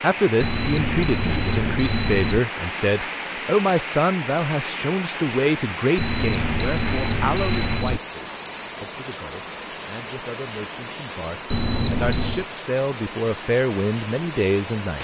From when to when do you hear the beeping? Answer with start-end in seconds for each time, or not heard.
0.4-2.4, 6.0-8.0, 11.5-12.4.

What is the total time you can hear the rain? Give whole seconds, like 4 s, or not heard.
15 s.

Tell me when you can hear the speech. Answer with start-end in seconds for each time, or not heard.
0.0-14.9.